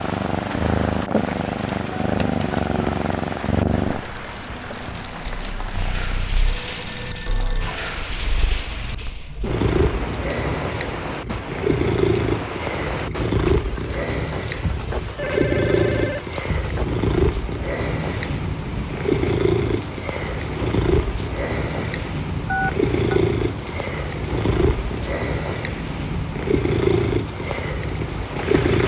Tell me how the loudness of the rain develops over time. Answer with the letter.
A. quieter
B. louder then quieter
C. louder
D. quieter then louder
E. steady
E.